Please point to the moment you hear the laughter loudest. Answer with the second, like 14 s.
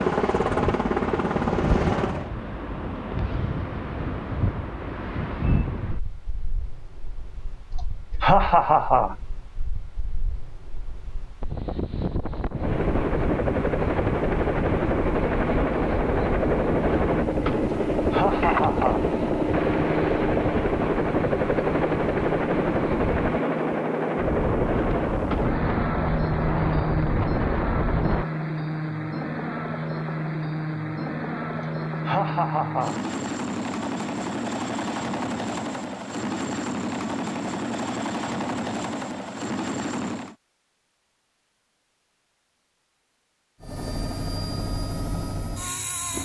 8 s.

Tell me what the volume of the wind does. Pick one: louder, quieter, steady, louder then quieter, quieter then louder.
quieter then louder.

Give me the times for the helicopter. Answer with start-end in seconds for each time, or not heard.
0.0-2.3, 12.5-40.4, 43.6-46.1.